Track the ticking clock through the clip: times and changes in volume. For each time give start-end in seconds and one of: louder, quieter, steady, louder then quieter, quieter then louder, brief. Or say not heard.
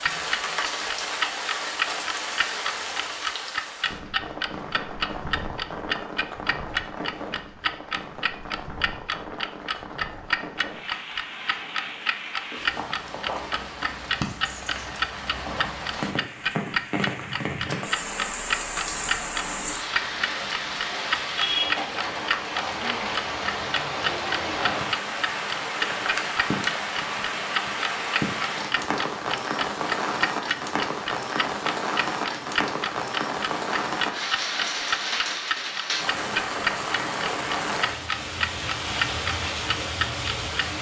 0.0-40.7 steady.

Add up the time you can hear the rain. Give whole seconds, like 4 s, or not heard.
41 s.